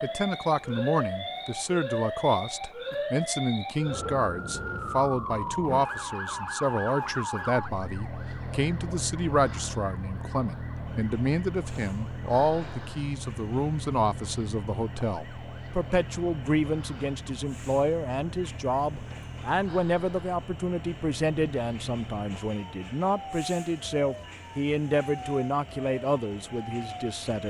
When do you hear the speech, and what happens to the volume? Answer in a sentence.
The speech can be heard from 0.0 to 27.4 s, at a steady volume.